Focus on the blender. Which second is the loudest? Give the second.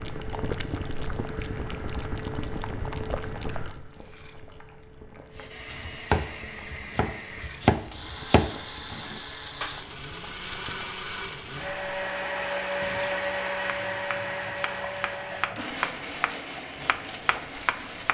13 s.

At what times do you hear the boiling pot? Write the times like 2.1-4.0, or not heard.
0.0-17.8.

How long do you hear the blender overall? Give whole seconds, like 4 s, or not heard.
13 s.